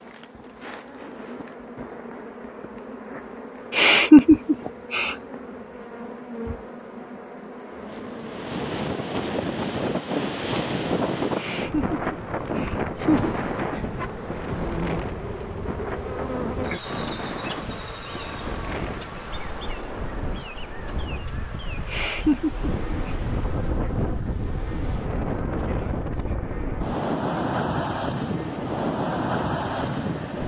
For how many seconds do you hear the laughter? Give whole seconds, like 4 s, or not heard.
5 s.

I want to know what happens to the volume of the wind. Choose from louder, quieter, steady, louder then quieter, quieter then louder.
quieter then louder.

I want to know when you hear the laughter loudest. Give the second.
4 s.